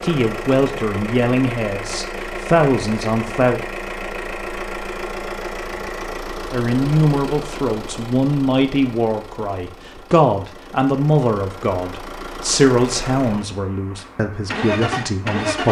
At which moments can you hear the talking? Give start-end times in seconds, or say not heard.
0.0-3.6, 6.5-15.6.